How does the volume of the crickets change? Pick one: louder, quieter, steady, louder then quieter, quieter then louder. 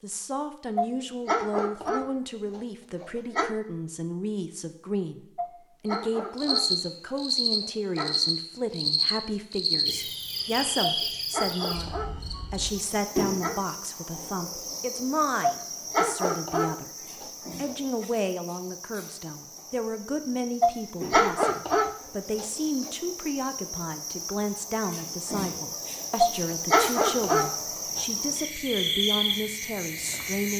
quieter then louder.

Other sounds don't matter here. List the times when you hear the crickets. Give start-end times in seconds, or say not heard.
5.8-30.5.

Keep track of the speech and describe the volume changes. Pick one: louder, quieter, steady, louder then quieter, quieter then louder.
steady.